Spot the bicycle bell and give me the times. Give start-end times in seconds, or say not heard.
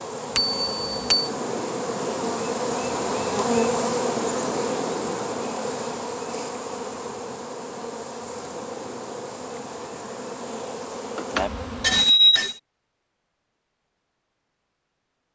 0.3-1.3, 11.2-12.6.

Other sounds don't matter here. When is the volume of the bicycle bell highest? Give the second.
12 s.